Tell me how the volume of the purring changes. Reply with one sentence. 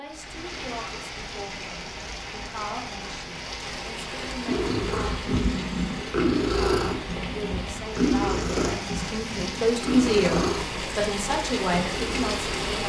The loudness of the purring goes down.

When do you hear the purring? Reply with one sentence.
You can hear the purring from 4.5 to 12.6 s.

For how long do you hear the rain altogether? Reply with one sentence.
You can hear the rain for 13 seconds altogether.